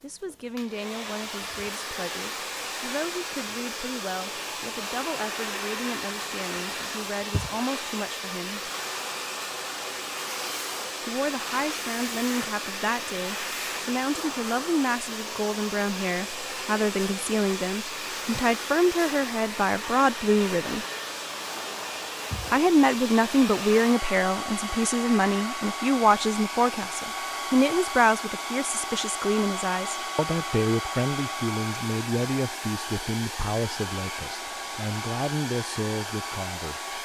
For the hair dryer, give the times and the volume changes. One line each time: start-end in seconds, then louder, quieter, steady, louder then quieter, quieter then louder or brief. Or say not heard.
0.0-36.9 steady.